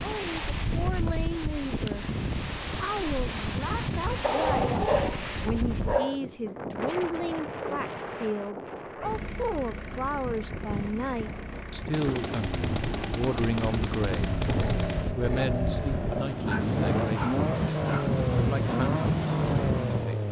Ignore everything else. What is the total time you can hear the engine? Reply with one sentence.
The engine can be heard for 11 seconds in total.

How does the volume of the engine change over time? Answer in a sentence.
The loudness of the engine goes up.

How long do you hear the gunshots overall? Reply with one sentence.
You can hear the gunshots for 3 seconds altogether.